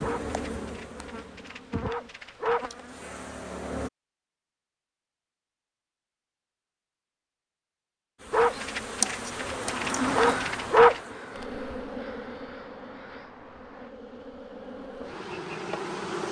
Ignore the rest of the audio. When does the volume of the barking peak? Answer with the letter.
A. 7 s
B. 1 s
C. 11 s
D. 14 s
C.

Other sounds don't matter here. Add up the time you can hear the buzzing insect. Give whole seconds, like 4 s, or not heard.
12 s.